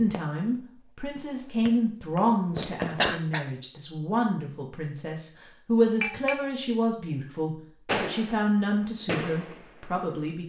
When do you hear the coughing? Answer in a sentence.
You can hear the coughing from 3.0 to 3.5 s.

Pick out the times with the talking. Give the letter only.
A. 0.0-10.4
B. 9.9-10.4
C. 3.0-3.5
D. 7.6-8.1
A.